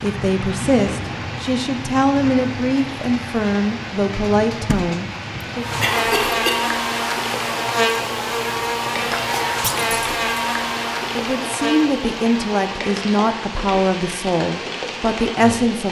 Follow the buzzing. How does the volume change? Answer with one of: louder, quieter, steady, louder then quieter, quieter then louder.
quieter.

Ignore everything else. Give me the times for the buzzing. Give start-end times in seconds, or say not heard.
5.5-15.7.